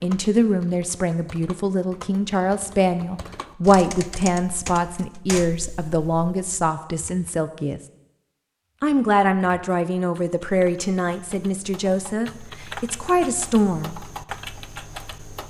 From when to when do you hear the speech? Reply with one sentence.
You can hear the speech from 0.0 to 7.8 s and from 8.8 to 13.9 s.